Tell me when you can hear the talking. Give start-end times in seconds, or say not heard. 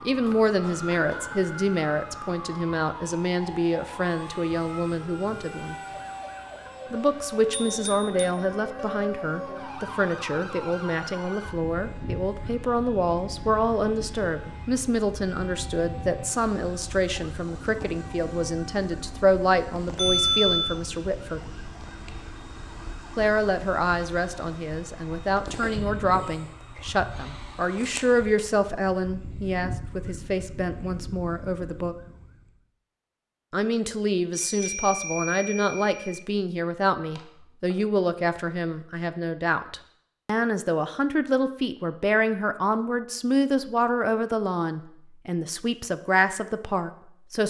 0.0-5.8, 6.9-21.4, 23.1-31.9, 33.5-47.4.